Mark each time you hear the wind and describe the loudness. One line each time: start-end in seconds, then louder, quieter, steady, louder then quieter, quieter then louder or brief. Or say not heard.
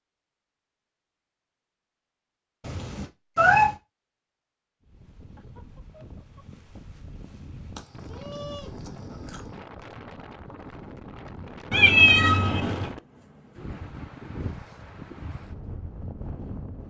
4.8-16.8 louder.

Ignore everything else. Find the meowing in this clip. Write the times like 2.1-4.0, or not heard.
2.6-3.8, 7.8-9.4, 11.7-12.9.